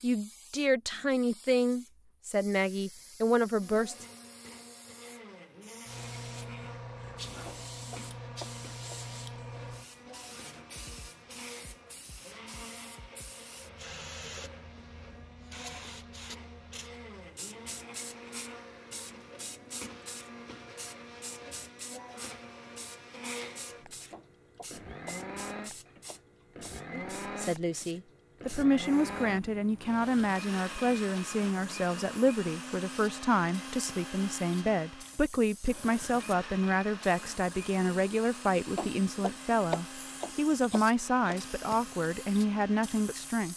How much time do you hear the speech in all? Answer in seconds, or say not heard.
21 s.